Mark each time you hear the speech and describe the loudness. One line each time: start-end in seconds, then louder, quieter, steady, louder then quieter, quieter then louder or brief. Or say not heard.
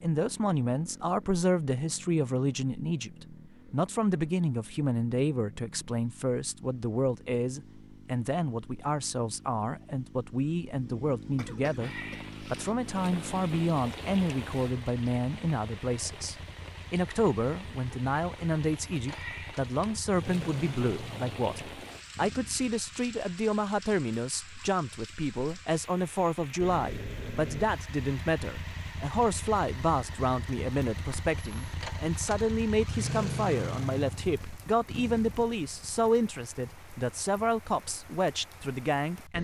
0.0-39.3 steady.